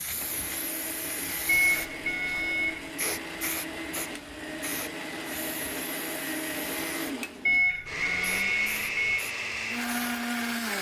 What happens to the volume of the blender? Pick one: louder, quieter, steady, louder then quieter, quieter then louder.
louder.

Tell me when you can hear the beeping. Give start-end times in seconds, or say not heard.
1.4-2.9, 7.5-9.2.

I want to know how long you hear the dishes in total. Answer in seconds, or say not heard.
not heard.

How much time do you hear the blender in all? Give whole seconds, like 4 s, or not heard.
11 s.